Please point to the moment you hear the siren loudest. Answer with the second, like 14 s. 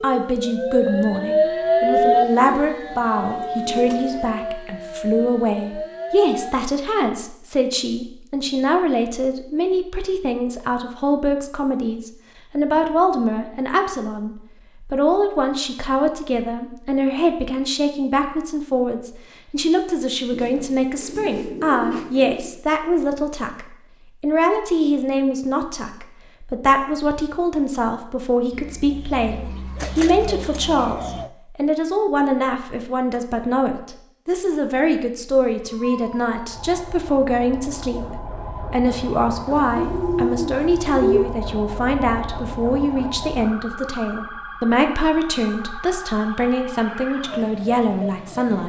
2 s.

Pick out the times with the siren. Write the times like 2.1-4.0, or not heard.
0.0-6.7, 35.6-48.6.